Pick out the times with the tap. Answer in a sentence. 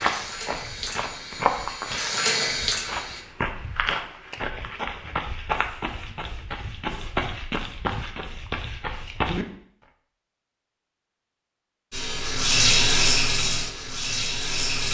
You can hear the tap from 0.0 to 3.2 s and from 11.9 to 14.8 s.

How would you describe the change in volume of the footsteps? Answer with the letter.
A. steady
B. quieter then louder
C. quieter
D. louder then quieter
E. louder
A.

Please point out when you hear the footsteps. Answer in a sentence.
The footsteps can be heard from 0.0 to 9.4 s.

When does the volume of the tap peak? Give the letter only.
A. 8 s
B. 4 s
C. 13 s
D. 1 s
C.